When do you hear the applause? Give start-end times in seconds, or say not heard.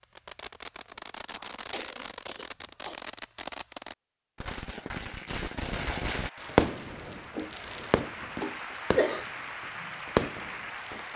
6.2-11.1.